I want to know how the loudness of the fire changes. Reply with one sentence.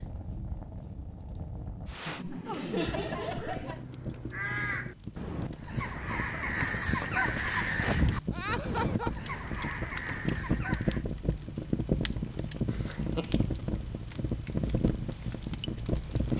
The volume of the fire goes up.